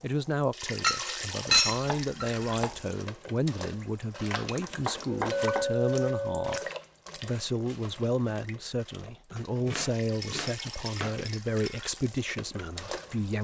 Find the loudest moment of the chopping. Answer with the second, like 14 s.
5 s.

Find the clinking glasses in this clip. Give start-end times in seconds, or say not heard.
0.8-2.3, 5.3-6.7, 10.2-11.8.